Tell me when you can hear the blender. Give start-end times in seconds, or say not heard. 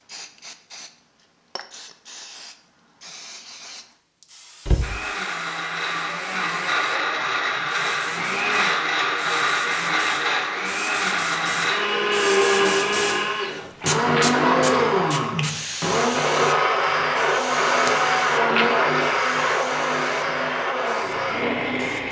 4.8-22.0.